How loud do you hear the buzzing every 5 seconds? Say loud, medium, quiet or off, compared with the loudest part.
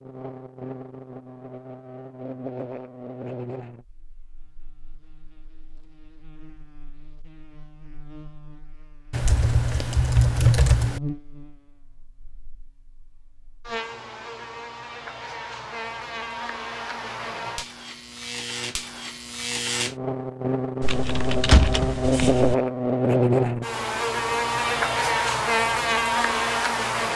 quiet, quiet, quiet, medium, loud, loud.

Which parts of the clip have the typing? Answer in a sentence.
You can hear the typing from 9.1 to 11.0 s and from 20.8 to 22.6 s.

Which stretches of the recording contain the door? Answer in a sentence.
The door can be heard from 21.5 to 21.9 s.